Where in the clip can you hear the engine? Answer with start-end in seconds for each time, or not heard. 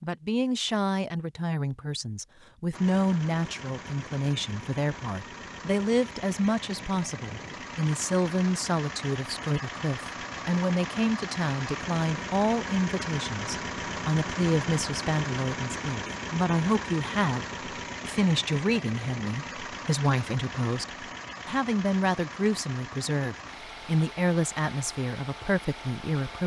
2.7-26.4.